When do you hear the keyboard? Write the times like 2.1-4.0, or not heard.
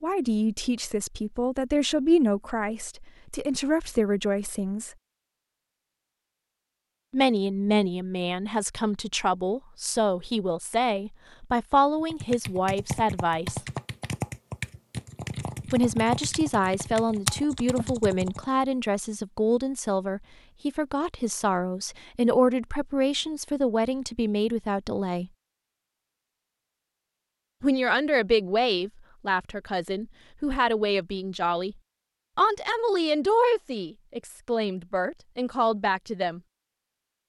12.0-18.4.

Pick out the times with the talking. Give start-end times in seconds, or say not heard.
0.0-4.9, 7.1-13.6, 15.7-25.3, 27.6-31.8, 32.4-36.4.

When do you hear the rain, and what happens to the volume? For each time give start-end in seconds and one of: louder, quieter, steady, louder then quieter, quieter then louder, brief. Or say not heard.
not heard.